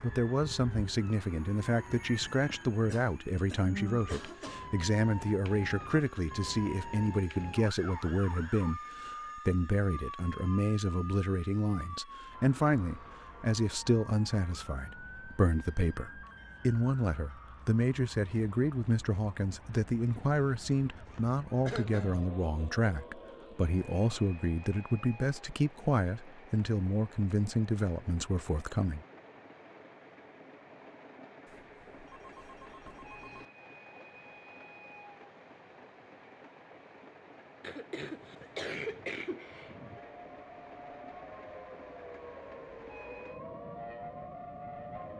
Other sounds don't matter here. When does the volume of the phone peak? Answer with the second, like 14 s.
33 s.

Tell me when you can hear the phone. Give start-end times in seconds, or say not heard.
31.4-33.5.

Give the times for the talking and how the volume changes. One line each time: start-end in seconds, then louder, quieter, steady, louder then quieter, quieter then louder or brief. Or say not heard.
0.0-29.0 steady.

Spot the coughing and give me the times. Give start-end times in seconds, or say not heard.
2.9-4.7, 21.1-22.2, 37.6-40.0.